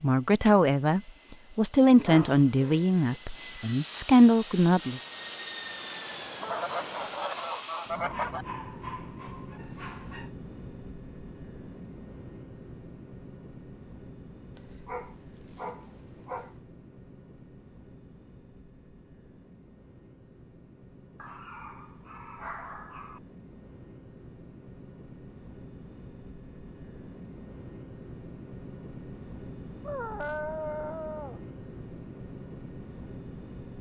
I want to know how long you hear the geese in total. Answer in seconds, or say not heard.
2 s.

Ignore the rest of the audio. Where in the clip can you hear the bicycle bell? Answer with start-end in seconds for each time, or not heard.
not heard.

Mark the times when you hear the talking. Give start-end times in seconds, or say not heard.
0.0-5.0.